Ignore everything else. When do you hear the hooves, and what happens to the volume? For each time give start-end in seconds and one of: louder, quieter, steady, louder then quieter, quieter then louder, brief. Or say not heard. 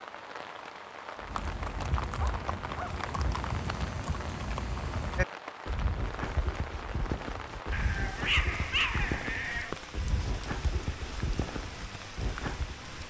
1.2-12.8 steady.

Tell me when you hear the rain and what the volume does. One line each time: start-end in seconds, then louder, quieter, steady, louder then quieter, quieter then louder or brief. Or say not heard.
0.0-13.0 steady.